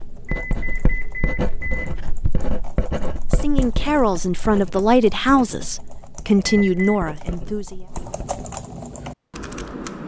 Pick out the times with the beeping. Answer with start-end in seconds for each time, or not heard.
0.2-1.9, 6.5-7.0.